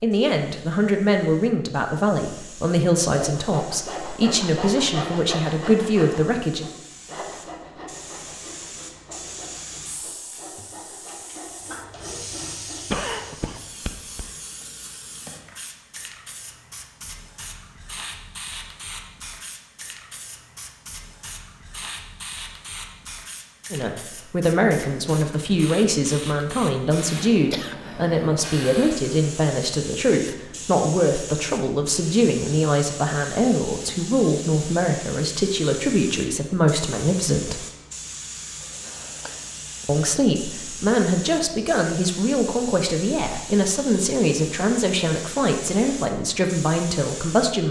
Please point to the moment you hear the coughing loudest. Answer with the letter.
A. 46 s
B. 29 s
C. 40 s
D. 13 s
D.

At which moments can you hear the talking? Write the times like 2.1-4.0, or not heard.
0.0-6.7, 23.7-37.6, 39.9-47.6.